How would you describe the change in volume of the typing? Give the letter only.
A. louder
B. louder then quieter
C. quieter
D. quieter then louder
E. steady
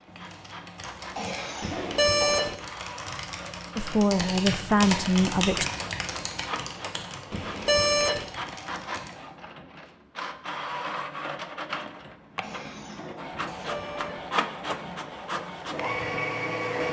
B.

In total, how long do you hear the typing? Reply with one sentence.
The typing can be heard for 9 seconds in total.